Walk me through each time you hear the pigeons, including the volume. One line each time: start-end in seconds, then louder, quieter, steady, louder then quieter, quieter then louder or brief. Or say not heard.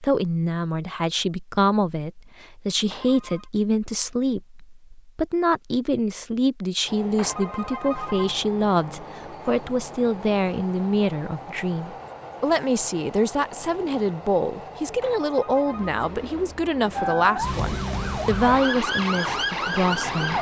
not heard.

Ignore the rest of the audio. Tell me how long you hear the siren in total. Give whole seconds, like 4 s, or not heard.
3 s.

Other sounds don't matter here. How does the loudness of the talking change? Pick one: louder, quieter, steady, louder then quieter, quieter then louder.
steady.